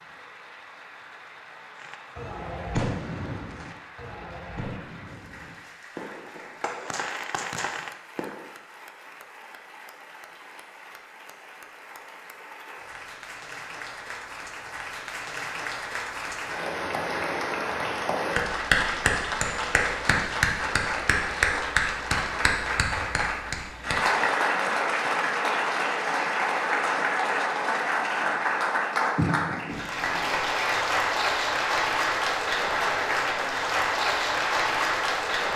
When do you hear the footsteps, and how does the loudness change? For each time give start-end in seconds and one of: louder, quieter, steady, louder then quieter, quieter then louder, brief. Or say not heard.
not heard.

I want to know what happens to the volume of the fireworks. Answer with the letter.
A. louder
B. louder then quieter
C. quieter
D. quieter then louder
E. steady
D.